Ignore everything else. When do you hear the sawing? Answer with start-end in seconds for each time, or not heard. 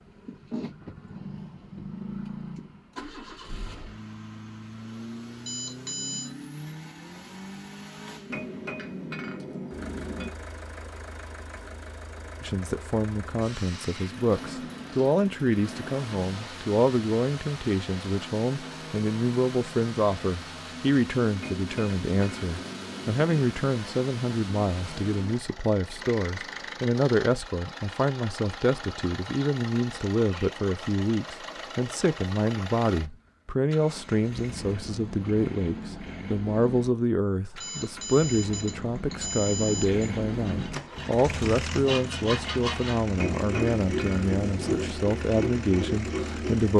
40.2-46.7.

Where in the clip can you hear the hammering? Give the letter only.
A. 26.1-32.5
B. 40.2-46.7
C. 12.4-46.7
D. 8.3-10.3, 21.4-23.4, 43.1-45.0
D.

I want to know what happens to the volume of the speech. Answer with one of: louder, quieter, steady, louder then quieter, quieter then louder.
steady.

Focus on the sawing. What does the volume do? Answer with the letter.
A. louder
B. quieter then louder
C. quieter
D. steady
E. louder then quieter
A.